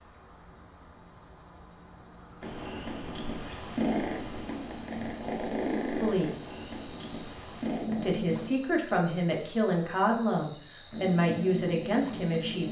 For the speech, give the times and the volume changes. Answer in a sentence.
The speech can be heard briefly from 6.0 to 6.4 s; and from 7.9 to 12.6 s, at a steady volume.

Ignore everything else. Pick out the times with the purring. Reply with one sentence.
You can hear the purring from 2.4 to 8.4 s and from 10.9 to 12.6 s.